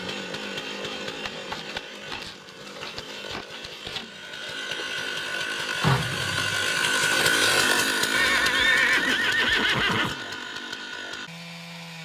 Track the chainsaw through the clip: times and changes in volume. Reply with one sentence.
You can hear the chainsaw from 0.0 to 11.9 s, getting louder then quieter.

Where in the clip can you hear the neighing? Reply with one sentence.
The neighing can be heard from 8.1 to 10.2 s.